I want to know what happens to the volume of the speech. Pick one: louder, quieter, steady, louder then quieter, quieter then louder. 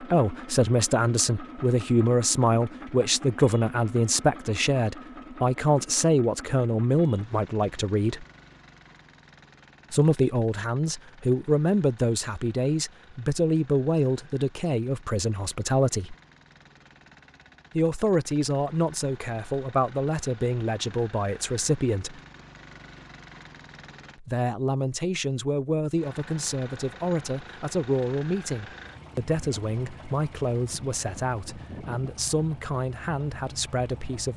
quieter.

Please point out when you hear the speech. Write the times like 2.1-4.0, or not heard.
0.0-8.2, 9.9-16.1, 17.8-22.2, 24.2-34.3.